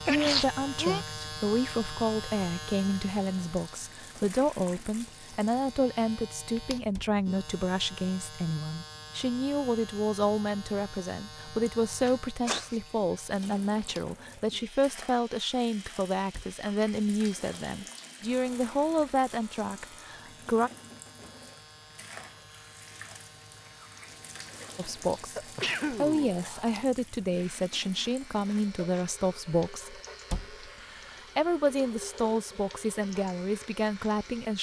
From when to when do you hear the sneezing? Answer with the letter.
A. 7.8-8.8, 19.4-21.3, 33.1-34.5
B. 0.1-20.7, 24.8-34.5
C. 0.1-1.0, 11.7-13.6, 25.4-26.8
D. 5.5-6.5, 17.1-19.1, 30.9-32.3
C.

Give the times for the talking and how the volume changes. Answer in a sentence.
The talking can be heard from 0.1 to 20.7 s, at a steady volume; and from 24.8 to 34.5 s, at a steady volume.